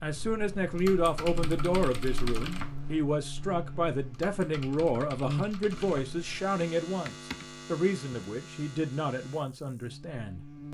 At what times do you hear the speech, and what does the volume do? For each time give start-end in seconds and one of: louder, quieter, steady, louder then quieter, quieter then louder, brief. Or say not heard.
0.0-10.6 quieter.